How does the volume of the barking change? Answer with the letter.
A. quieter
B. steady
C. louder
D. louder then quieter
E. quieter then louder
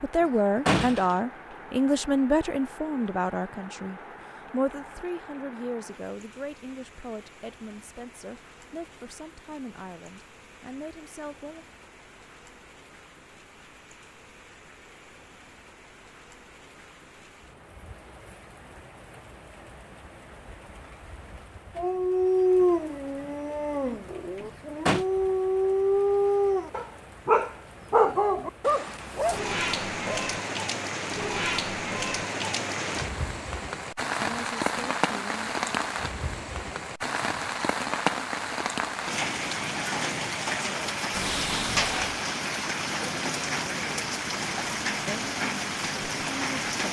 E.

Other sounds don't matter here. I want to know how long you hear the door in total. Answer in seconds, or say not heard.
3 s.